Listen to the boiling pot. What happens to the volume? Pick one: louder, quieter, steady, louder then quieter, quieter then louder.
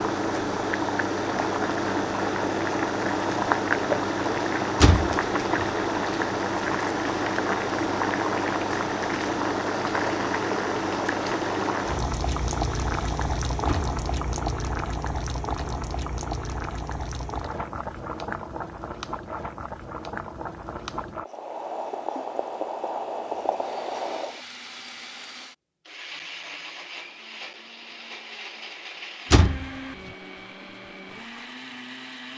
quieter.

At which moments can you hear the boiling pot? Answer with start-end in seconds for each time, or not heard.
0.0-24.4.